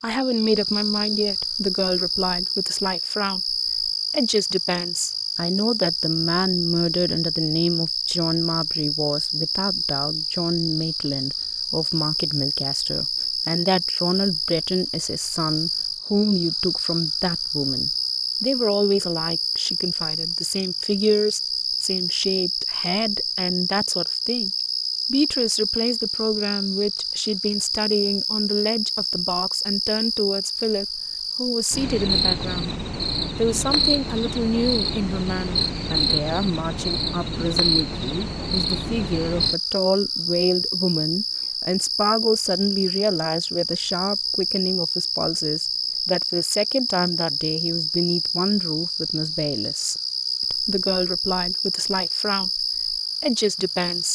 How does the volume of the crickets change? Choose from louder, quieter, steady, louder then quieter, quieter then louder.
steady.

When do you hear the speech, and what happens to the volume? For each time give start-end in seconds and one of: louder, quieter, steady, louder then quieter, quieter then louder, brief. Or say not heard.
0.0-24.5 steady
25.1-32.8 steady
33.4-54.1 steady.